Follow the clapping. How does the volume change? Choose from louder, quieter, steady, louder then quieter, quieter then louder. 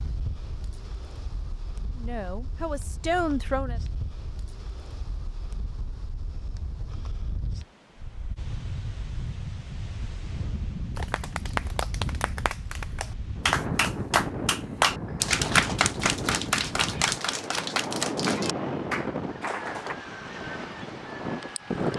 louder then quieter.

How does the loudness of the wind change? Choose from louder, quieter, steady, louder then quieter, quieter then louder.
louder.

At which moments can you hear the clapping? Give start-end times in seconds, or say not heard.
10.9-19.9.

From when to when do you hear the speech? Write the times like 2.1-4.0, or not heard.
1.9-3.8.